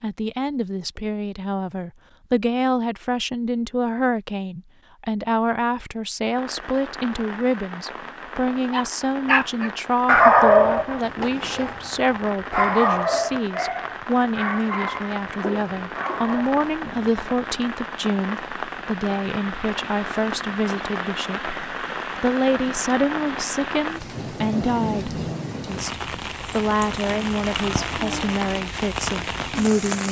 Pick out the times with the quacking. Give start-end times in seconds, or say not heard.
not heard.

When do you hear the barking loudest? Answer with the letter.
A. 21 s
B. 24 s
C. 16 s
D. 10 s
D.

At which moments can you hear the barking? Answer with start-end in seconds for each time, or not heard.
8.7-17.5.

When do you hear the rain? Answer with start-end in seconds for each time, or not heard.
6.2-30.0.